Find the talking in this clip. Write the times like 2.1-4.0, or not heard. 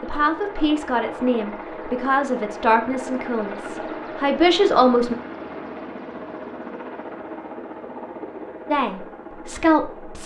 0.0-5.2, 8.7-10.2.